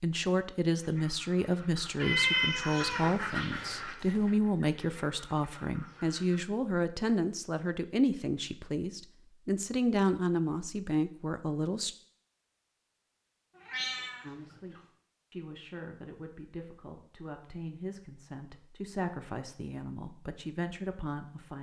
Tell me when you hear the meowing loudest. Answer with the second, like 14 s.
2 s.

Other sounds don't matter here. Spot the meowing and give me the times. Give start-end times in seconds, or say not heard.
1.9-3.2, 13.7-14.8.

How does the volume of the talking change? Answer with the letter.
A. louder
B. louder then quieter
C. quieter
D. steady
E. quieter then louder
C.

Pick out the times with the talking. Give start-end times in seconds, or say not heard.
0.0-11.9, 14.2-21.5.